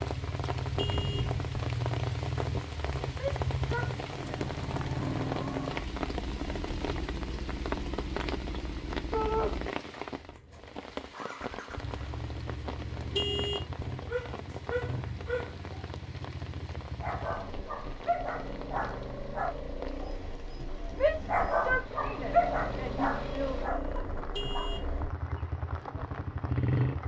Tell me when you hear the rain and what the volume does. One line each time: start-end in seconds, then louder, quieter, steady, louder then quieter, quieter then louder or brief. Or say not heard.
0.0-27.0 quieter.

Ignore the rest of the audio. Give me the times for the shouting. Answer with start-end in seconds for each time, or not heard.
3.1-4.4, 9.1-9.6, 20.9-23.6.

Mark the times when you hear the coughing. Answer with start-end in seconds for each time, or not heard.
not heard.